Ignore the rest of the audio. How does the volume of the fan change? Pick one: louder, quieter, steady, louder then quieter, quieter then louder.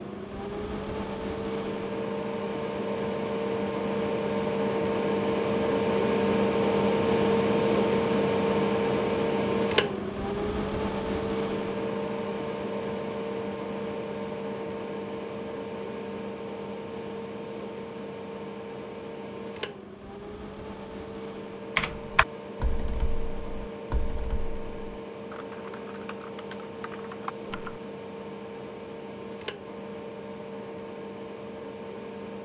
quieter.